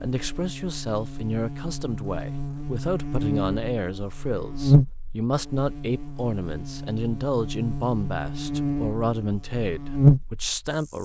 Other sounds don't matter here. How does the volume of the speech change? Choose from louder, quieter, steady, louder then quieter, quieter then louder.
steady.